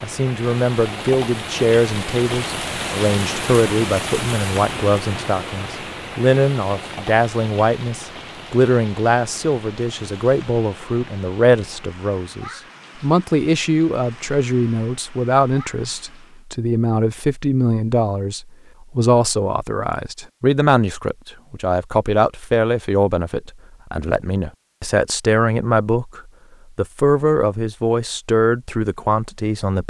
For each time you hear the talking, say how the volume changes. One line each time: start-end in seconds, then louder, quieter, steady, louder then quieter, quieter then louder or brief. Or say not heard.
0.0-29.8 steady.